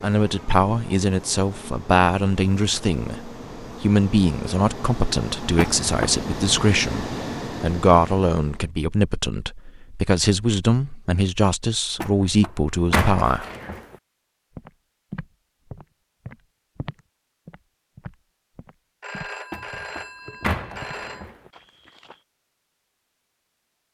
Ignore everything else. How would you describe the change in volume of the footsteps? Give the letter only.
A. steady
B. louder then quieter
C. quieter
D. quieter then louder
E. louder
C.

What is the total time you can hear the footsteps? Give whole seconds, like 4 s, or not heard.
8 s.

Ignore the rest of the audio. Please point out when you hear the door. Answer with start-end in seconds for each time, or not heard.
5.5-6.2, 12.0-13.9, 19.5-21.5.